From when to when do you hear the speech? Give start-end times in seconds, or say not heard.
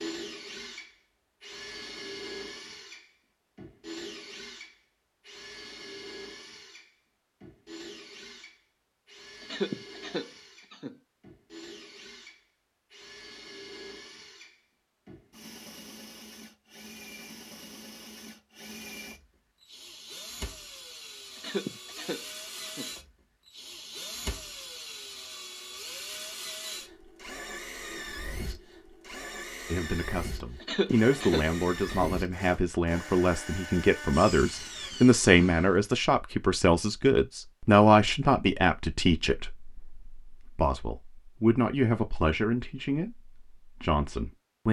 29.7-44.6.